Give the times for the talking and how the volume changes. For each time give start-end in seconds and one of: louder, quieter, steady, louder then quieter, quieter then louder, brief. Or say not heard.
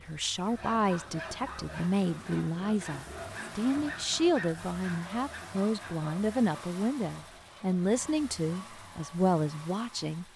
0.1-10.2 steady.